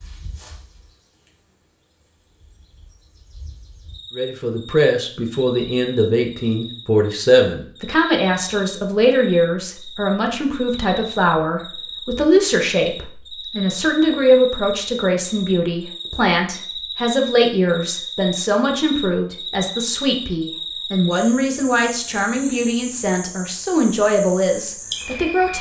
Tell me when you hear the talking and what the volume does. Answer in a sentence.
You can hear the talking from 4.2 to 25.5 s, at a steady volume.